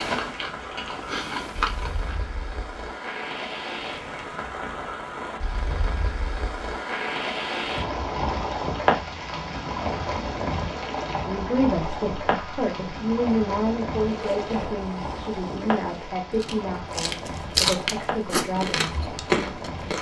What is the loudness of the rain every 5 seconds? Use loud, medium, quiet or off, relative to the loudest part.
medium, loud, loud, medium.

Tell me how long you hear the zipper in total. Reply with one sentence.
You can hear the zipper for 2 seconds altogether.